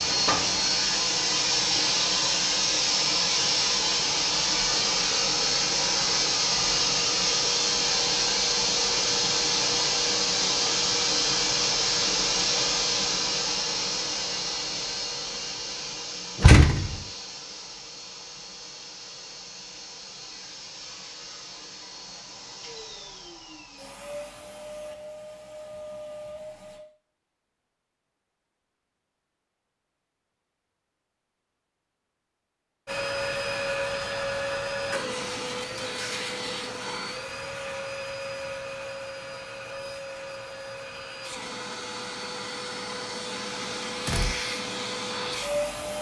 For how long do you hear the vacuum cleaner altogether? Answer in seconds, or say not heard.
40 s.